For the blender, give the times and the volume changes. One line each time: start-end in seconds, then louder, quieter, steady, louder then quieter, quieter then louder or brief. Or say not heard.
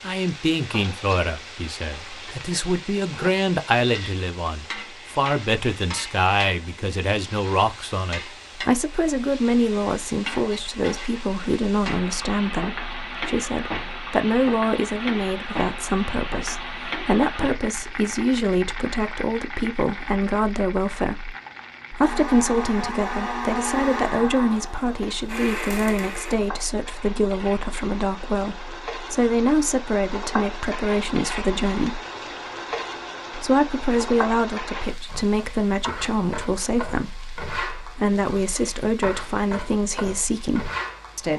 21.9-26.4 quieter then louder.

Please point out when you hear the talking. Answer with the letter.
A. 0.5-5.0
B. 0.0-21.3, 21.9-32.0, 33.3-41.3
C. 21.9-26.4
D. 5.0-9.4
B.